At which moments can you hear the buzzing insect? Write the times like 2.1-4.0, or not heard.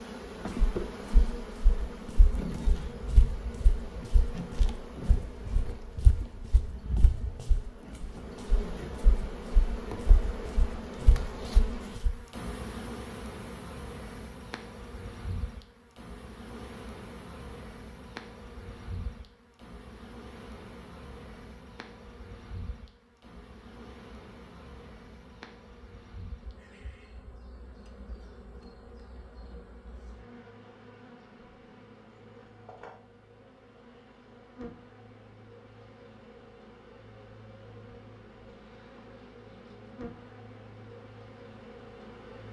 0.0-42.4.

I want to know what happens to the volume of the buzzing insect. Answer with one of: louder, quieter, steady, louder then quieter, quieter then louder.
quieter.